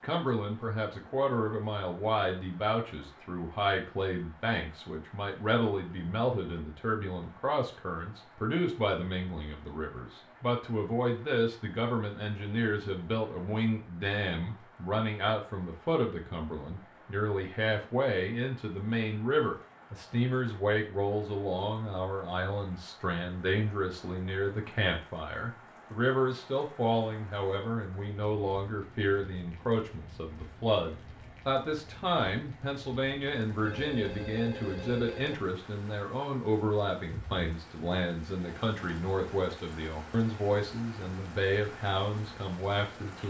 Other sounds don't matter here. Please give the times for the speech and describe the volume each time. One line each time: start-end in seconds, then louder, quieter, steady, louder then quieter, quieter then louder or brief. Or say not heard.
0.0-43.2 steady.